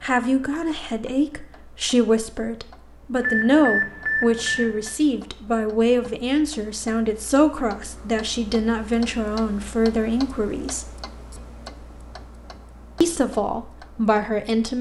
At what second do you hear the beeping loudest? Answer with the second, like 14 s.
4 s.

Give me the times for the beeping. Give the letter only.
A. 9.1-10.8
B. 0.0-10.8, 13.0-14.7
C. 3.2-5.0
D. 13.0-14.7
C.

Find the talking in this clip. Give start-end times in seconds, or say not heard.
0.0-10.8, 13.0-14.7.